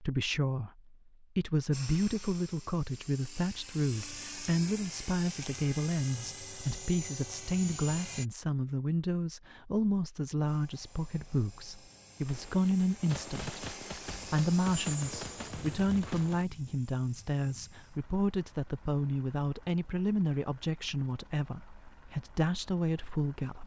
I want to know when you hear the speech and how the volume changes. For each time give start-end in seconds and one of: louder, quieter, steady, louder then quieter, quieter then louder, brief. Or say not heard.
0.0-23.6 steady.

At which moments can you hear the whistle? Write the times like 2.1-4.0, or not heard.
not heard.